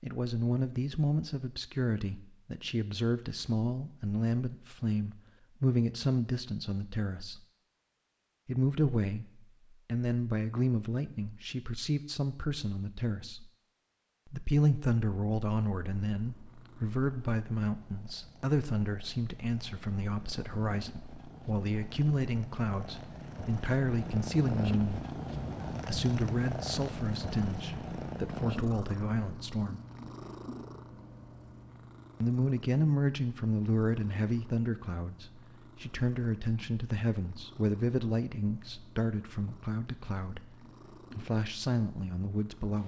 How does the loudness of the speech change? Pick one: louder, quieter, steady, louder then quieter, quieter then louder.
steady.